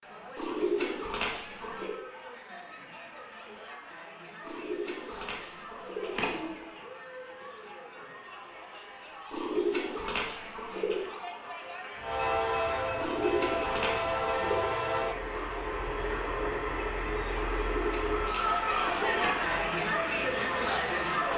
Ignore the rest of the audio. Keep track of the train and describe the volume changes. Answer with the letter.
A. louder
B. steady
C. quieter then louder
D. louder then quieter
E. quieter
E.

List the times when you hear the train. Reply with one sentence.
You can hear the train from 11.9 to 21.3 s.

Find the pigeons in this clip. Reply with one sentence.
You can hear the pigeons from 0.3 to 1.9 s, from 4.4 to 6.7 s, from 9.3 to 11.1 s, from 12.9 to 14.7 s and from 17.5 to 19.4 s.